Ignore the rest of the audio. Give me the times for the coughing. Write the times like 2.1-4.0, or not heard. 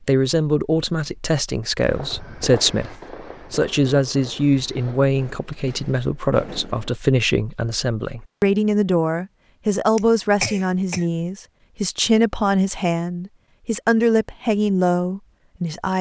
9.9-11.1.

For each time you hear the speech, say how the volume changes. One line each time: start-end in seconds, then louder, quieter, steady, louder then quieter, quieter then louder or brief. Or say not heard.
0.1-15.9 steady.